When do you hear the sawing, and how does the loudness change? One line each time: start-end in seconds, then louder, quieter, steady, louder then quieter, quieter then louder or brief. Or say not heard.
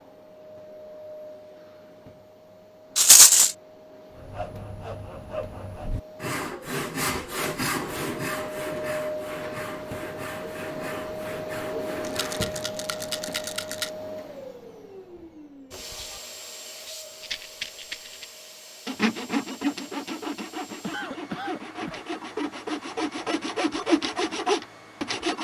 4.1-12.8 louder then quieter
18.9-25.3 quieter then louder.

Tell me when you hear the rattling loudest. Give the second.
3 s.